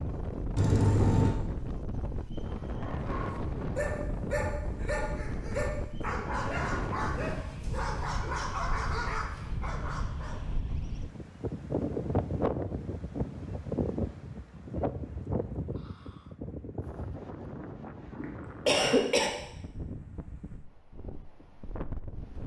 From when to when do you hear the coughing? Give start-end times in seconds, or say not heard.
0.6-1.4, 18.2-19.3.